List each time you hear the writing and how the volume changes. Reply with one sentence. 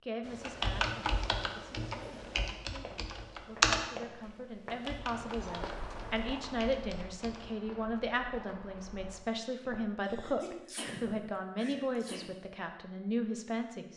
You can't hear the writing here.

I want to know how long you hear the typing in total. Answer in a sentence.
The typing can be heard for 7 seconds in total.